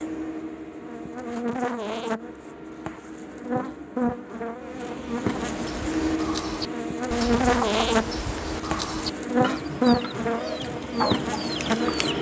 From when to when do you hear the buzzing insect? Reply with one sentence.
The buzzing insect can be heard from 0.0 to 12.1 s.